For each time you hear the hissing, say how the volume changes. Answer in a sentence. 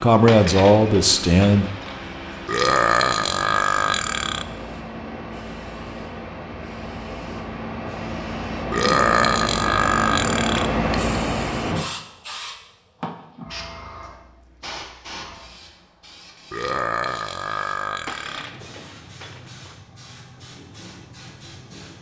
You can hear the hissing from 0.0 to 21.9 s, getting louder then quieter.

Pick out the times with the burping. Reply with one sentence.
The burping can be heard from 2.5 to 4.5 s, from 8.7 to 10.7 s and from 16.5 to 18.4 s.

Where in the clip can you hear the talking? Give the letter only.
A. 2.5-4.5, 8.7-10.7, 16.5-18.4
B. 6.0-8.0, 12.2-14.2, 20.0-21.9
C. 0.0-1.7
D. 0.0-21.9
C.